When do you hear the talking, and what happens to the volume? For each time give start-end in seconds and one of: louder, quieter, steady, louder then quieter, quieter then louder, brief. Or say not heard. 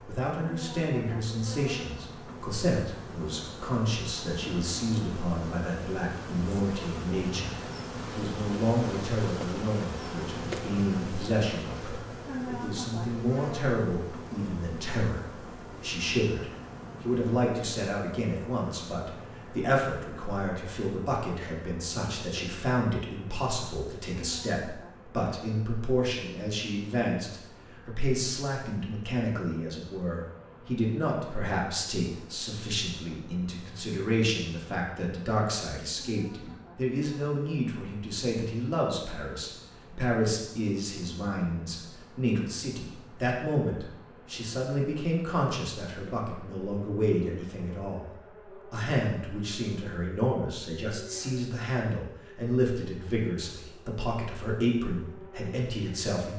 0.1-56.3 steady.